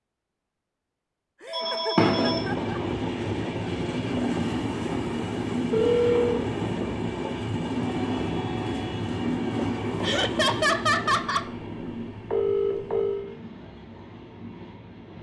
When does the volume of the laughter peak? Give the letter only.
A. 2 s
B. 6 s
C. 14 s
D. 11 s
D.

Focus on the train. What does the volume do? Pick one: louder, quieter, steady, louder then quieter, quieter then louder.
quieter.